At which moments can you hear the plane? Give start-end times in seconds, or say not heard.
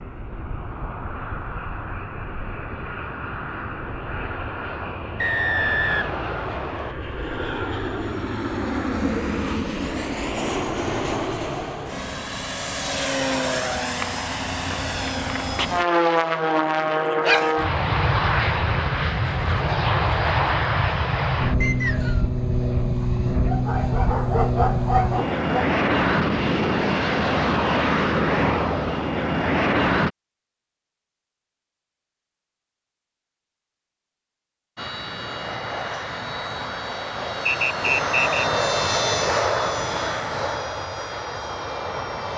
0.0-30.1, 34.8-42.3.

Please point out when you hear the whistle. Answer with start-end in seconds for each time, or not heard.
5.2-7.0, 21.6-22.2, 37.5-38.5.